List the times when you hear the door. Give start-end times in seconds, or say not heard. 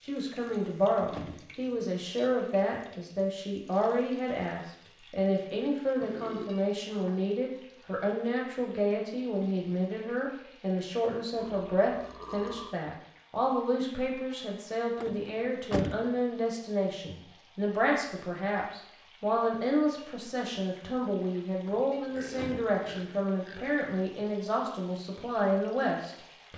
0.4-1.9, 15.0-16.1, 21.6-22.9.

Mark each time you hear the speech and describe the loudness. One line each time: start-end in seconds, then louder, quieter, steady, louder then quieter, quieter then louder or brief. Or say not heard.
0.0-26.5 steady.